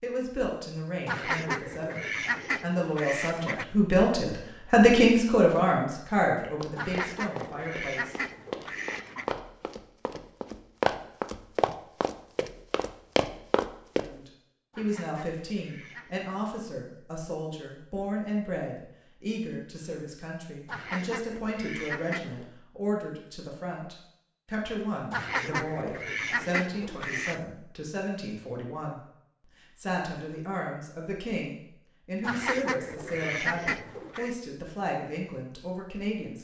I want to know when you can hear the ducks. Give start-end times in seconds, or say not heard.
1.1-3.6, 6.8-9.3, 14.7-16.2, 20.6-22.5, 25.1-27.4, 32.2-34.4.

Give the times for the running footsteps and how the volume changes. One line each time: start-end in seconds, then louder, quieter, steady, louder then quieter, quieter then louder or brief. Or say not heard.
6.6-14.1 louder.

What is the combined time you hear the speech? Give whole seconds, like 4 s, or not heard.
29 s.